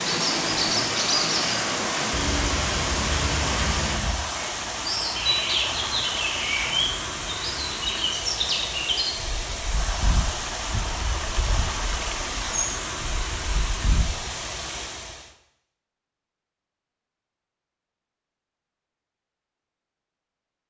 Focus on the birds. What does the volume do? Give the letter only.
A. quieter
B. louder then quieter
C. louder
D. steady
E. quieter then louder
A.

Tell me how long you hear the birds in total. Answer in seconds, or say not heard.
14 s.